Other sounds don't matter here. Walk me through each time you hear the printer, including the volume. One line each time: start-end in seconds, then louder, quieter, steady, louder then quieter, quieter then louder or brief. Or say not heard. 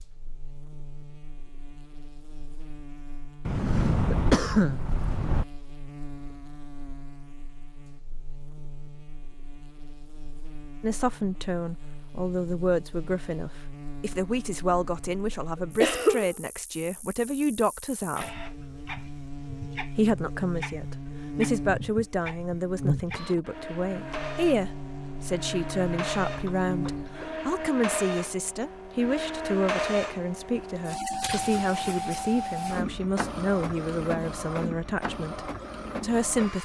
18.1-36.5 louder.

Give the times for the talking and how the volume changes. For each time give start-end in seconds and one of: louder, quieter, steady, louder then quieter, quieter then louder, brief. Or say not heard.
10.8-18.4 steady
19.9-36.5 steady.